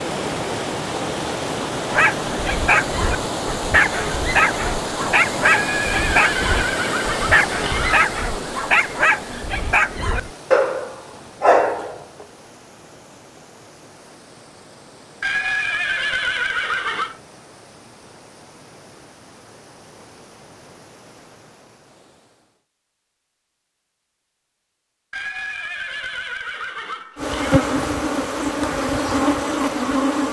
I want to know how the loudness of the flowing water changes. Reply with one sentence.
The volume of the flowing water goes down.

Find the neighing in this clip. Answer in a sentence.
The neighing can be heard from 5.5 to 8.1 s, from 15.2 to 17.2 s and from 25.1 to 27.8 s.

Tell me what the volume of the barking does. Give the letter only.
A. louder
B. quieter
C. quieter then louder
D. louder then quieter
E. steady
E.